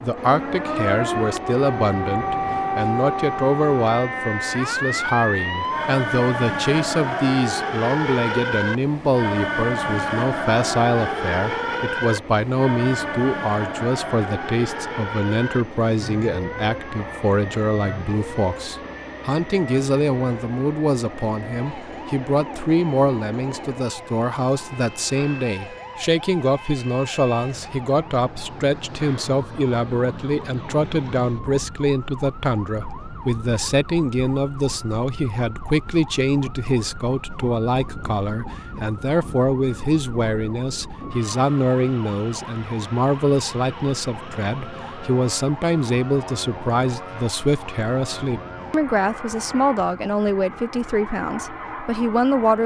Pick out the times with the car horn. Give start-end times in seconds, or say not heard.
not heard.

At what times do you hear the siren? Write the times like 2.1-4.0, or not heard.
0.0-52.6.